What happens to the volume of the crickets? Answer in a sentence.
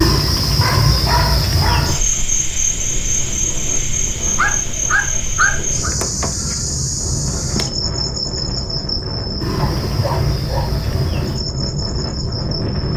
The loudness of the crickets goes down.